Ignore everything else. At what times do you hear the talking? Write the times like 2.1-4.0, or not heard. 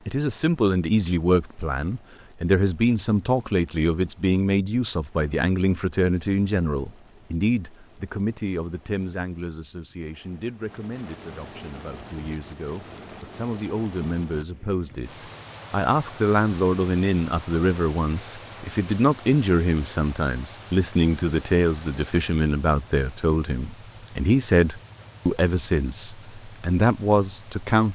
0.1-27.9.